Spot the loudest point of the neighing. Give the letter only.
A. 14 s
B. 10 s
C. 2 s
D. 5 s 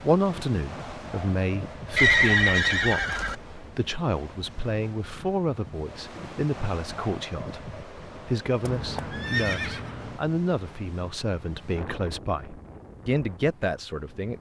C.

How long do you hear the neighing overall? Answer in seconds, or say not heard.
3 s.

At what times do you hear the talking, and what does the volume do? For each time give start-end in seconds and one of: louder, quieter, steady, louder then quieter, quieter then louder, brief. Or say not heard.
0.0-14.3 steady.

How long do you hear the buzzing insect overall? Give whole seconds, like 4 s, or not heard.
not heard.